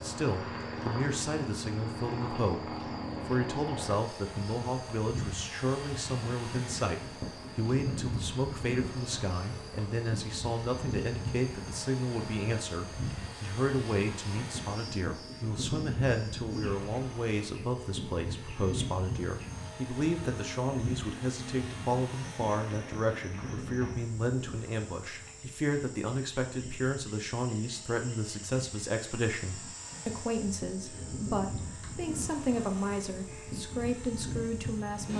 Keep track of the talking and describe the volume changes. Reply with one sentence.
The volume of the talking stays about the same.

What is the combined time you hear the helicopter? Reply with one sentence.
You can hear the helicopter for 35 seconds altogether.